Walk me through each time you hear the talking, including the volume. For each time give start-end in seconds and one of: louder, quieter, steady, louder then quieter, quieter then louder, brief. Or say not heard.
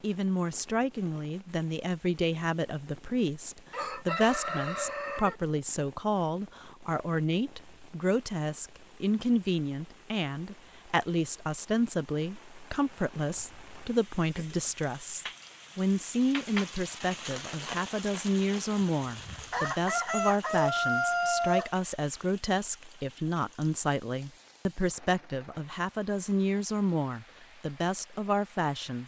0.0-29.0 steady.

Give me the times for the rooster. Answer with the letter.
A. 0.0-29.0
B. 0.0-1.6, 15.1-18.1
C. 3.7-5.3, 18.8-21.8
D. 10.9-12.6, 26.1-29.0
C.